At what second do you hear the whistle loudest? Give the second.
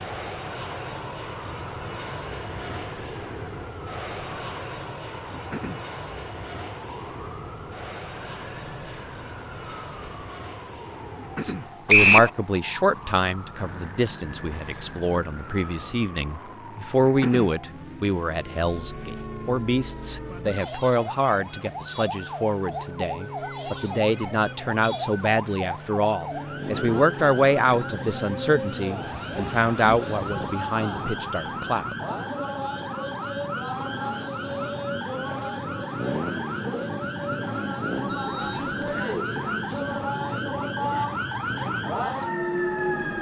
12 s.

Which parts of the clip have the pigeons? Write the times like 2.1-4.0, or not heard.
not heard.